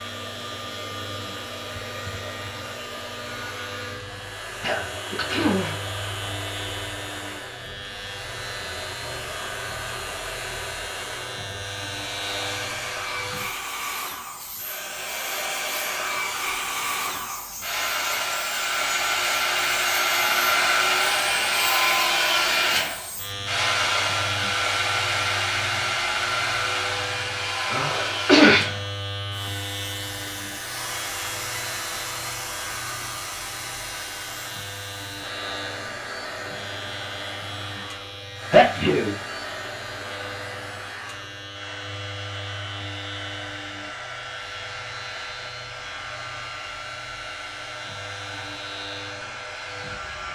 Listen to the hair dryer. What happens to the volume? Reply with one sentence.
The volume of the hair dryer goes up, then down.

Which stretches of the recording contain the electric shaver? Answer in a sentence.
You can hear the electric shaver from 0.0 to 50.3 s.